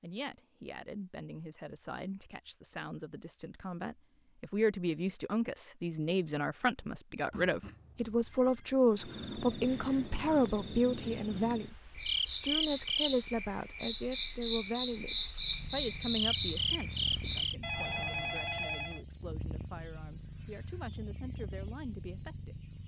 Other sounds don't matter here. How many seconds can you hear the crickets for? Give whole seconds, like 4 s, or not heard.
14 s.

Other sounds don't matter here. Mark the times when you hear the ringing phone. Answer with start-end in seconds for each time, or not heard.
7.3-8.8, 17.6-19.0.